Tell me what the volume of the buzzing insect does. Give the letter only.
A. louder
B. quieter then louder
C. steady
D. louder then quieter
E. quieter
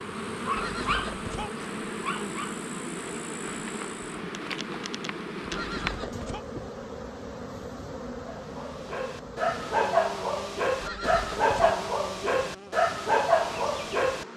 E.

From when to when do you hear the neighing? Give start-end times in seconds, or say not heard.
0.6-1.5, 5.5-6.5, 10.8-11.8.